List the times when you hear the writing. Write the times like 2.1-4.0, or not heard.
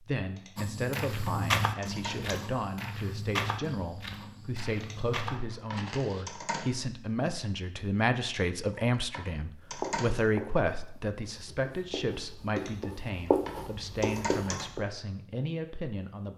9.7-14.8.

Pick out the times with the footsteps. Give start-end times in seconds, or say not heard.
0.6-6.2.